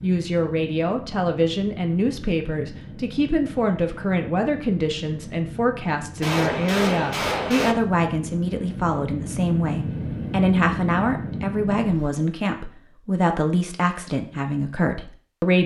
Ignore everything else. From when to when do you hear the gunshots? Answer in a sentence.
You can hear the gunshots from 6.2 to 7.8 s.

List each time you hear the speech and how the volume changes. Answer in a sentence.
You can hear the speech from 0.0 to 15.6 s, at a steady volume.